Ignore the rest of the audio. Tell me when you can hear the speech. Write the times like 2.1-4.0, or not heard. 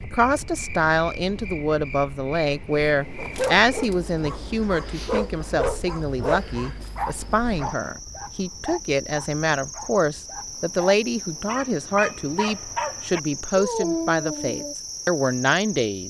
0.0-16.0.